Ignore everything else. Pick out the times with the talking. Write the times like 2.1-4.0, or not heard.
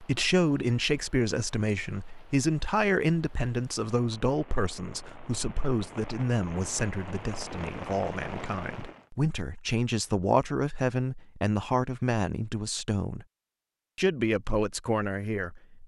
0.0-13.2, 13.9-15.8.